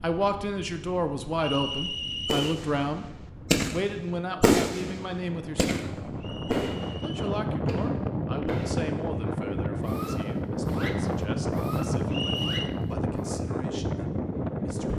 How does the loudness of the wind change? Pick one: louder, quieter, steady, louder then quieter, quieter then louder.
louder.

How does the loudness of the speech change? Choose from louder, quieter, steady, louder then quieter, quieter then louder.
quieter.